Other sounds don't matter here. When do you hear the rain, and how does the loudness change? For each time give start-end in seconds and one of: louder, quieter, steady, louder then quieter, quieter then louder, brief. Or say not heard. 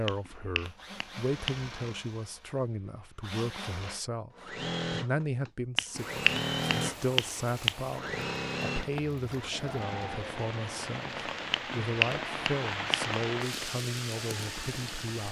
6.0-15.2 louder.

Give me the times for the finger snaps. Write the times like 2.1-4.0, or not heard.
0.1-1.6, 5.8-7.8, 11.5-13.1.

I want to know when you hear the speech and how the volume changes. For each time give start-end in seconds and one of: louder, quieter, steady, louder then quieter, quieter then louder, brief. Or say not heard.
0.0-15.2 steady.